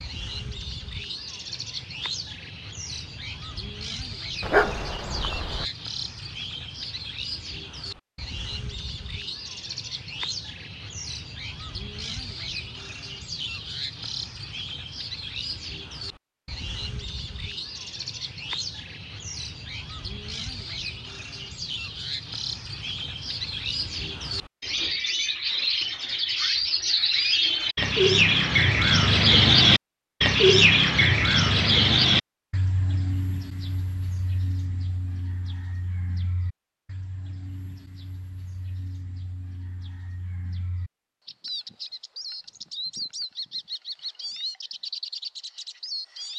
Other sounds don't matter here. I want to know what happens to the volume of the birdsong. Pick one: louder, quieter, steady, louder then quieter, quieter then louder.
louder then quieter.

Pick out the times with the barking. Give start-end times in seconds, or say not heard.
4.4-5.7.